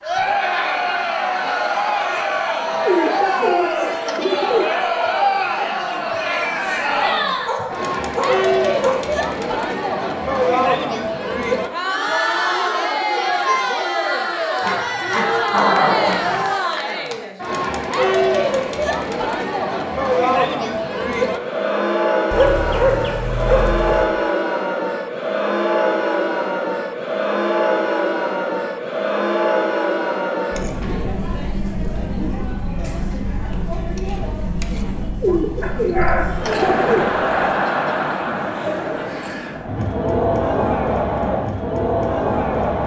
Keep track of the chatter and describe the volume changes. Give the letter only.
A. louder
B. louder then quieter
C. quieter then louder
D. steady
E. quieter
D.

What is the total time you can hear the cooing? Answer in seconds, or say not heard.
4 s.